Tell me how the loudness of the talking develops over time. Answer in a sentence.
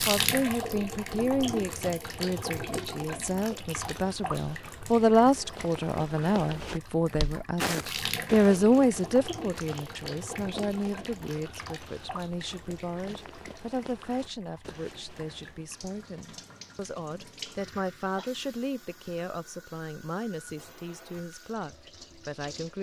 The loudness of the talking goes up, then down.